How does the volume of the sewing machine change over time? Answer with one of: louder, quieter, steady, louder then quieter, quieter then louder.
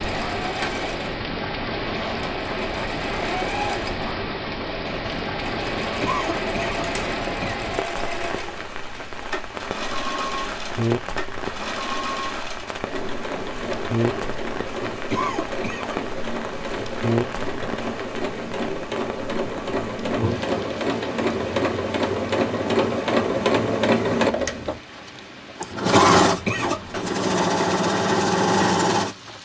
louder.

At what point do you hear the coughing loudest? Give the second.
26 s.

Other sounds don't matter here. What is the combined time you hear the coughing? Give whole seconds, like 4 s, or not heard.
4 s.